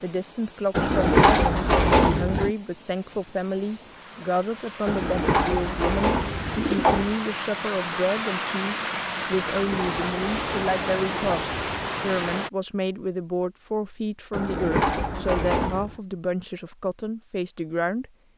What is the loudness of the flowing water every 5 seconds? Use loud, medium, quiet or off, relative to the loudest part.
quiet, loud, loud, off.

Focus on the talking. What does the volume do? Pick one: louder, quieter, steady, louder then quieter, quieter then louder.
steady.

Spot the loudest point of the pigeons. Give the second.
1 s.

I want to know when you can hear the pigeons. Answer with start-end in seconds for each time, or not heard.
0.8-2.5, 4.8-7.2, 9.3-11.9, 14.3-15.9.